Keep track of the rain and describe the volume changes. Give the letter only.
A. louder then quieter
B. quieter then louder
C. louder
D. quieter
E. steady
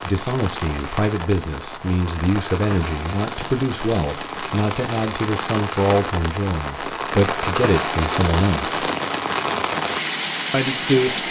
C.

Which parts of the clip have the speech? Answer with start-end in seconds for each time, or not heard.
0.0-8.8, 10.5-11.2.